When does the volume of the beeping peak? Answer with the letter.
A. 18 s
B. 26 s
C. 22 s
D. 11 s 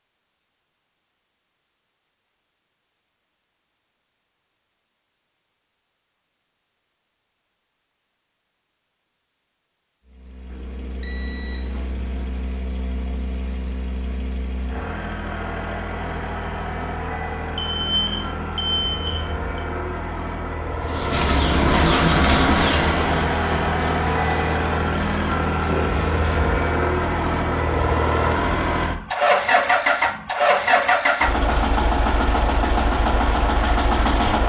A.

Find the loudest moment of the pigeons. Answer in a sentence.
The volume of the pigeons peaks at 22 seconds.